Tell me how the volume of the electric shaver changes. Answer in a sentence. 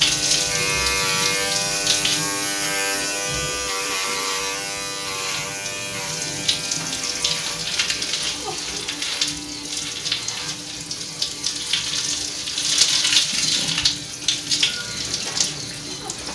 The loudness of the electric shaver goes down.